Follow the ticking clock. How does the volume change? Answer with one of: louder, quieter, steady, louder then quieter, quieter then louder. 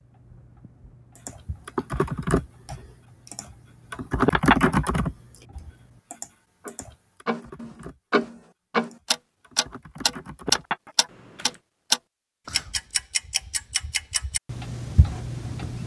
louder then quieter.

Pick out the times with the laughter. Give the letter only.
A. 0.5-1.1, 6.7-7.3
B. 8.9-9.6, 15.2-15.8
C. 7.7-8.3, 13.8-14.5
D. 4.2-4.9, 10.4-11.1
D.